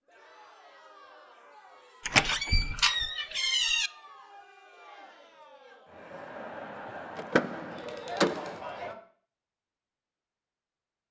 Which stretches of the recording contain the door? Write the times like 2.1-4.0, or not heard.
2.0-3.9, 7.2-8.6.